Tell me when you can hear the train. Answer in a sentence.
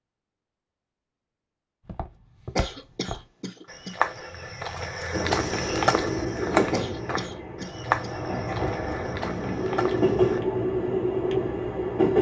You can hear the train from 5.1 to 12.1 s.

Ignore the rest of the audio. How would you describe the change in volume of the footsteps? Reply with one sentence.
The loudness of the footsteps goes up, then down.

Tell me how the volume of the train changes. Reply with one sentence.
The volume of the train goes down, then up.